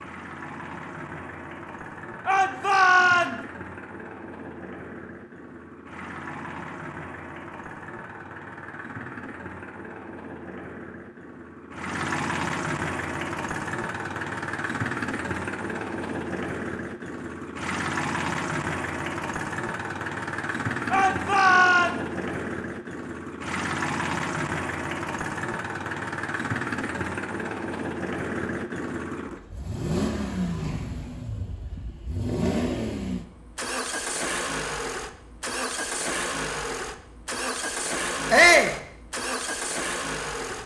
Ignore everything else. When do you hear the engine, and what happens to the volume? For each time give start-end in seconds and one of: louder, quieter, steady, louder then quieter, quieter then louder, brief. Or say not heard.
0.0-40.6 louder.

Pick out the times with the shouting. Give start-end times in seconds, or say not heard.
2.2-3.4, 20.9-21.9, 38.3-38.8.